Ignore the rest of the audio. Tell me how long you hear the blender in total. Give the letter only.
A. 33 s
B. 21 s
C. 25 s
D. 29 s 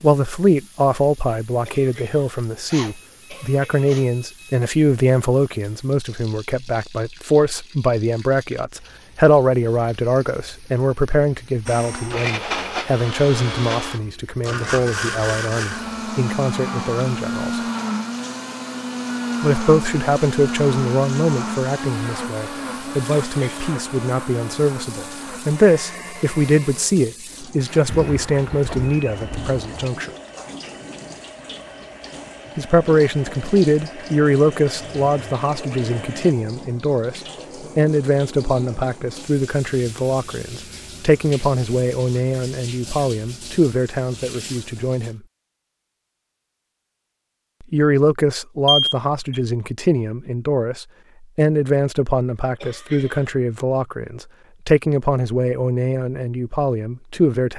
C.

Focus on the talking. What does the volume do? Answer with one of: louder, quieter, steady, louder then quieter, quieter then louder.
steady.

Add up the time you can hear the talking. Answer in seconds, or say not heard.
51 s.